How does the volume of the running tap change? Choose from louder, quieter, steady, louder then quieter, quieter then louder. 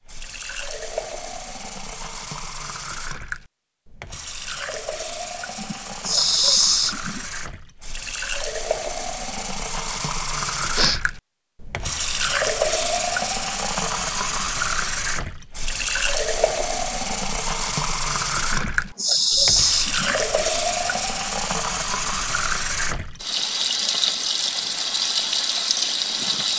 louder.